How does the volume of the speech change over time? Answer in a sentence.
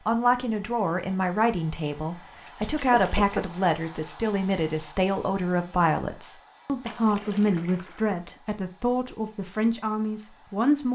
The loudness of the speech stays about the same.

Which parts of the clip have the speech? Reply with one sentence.
The speech can be heard from 0.1 to 10.9 s.